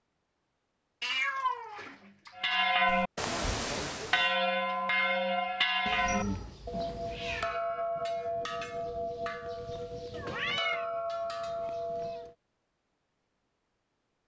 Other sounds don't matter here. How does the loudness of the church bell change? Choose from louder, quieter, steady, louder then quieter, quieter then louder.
quieter.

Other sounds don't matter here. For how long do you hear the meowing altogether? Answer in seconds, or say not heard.
4 s.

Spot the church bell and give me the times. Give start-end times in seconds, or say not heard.
2.4-12.3.